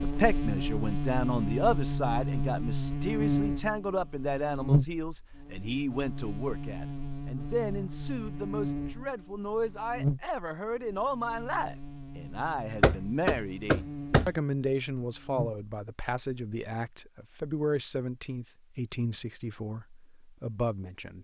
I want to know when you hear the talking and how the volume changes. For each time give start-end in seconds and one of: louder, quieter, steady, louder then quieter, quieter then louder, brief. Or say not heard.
0.0-21.1 steady.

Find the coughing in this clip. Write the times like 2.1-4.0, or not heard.
not heard.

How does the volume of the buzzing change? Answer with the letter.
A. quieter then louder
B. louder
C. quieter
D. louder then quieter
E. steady
C.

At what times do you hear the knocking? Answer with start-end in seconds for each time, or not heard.
12.8-14.3.